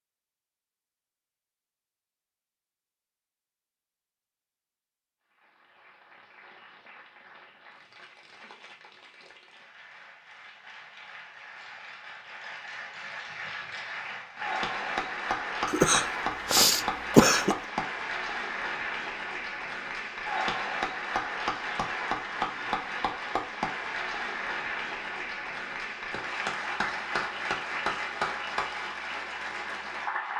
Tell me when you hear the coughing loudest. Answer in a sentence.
The loudest moment of the coughing is at 17 seconds.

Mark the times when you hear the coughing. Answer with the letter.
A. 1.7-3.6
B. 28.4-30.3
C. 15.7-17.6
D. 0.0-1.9
C.